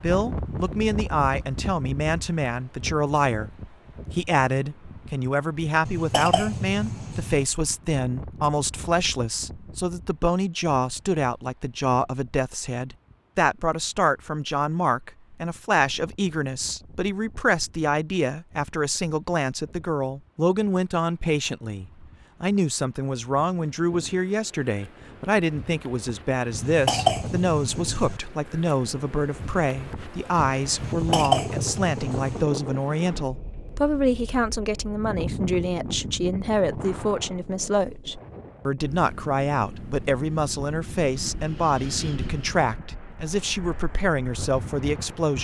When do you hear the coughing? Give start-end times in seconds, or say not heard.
5.8-7.5, 26.6-28.2, 30.8-32.5.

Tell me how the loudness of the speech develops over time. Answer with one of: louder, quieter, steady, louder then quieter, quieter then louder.
steady.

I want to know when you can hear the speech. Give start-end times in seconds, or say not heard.
0.0-3.5, 4.1-45.3.